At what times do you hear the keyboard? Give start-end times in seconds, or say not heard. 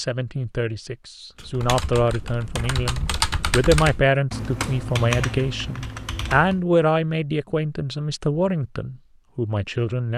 1.4-6.7.